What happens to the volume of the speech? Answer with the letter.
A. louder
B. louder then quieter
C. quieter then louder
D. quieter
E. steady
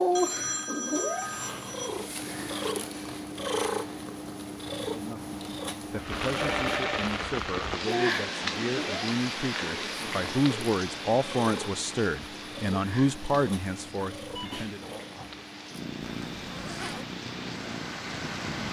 A.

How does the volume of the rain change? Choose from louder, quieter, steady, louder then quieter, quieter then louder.
quieter then louder.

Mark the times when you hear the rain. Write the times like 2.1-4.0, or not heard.
6.0-18.6.